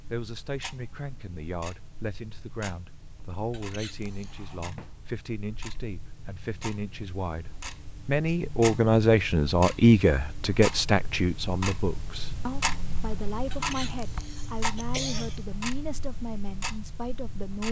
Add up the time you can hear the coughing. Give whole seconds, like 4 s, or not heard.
3 s.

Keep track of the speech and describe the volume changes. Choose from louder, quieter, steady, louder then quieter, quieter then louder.
louder then quieter.